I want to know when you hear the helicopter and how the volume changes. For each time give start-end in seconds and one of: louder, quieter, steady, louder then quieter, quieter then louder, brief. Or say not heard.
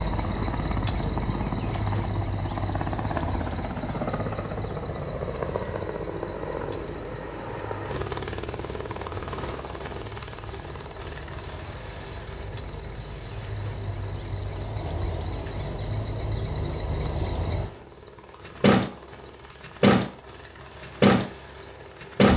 0.0-22.3 quieter.